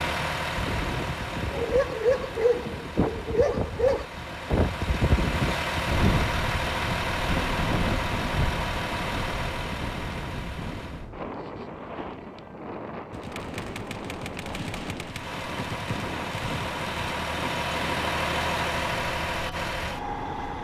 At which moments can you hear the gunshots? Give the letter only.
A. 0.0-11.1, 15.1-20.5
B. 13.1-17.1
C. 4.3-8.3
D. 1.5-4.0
B.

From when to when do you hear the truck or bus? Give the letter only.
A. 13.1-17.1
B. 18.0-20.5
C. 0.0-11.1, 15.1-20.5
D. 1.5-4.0
C.